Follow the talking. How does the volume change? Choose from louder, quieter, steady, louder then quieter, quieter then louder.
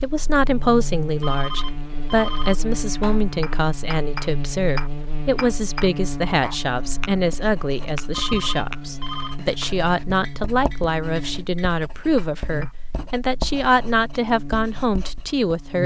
steady.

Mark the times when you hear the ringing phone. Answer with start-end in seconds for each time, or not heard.
1.2-2.6, 8.1-9.4.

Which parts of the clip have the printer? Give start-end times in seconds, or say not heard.
not heard.